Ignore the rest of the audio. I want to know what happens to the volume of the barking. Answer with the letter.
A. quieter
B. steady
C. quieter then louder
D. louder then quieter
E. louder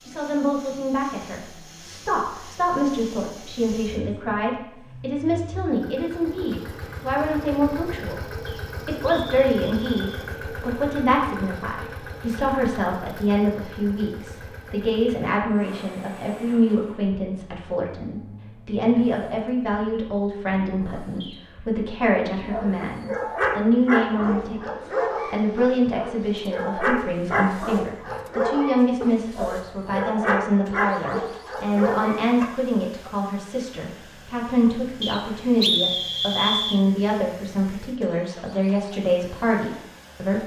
B.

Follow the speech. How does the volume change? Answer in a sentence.
The loudness of the speech stays about the same.